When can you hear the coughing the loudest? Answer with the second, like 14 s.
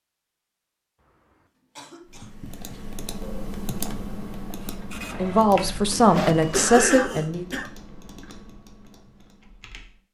7 s.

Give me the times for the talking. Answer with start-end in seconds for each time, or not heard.
5.2-7.5.